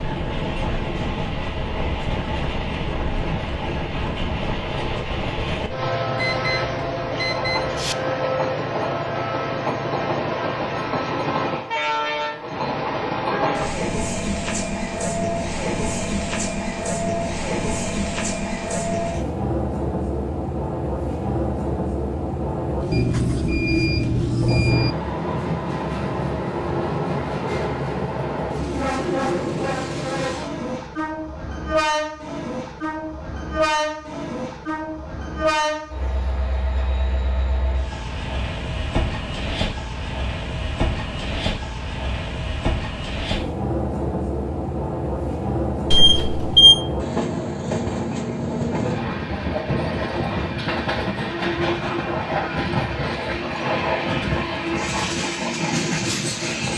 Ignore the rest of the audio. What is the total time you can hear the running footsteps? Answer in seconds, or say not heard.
not heard.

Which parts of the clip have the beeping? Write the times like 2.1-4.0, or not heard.
6.2-8.0, 22.9-24.9, 45.9-46.8.